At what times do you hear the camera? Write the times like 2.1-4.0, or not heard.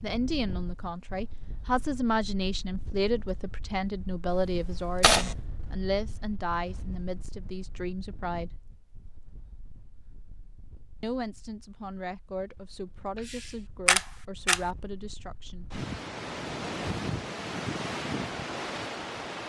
4.5-5.5, 13.2-14.6.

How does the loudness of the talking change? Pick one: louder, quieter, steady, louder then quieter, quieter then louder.
quieter.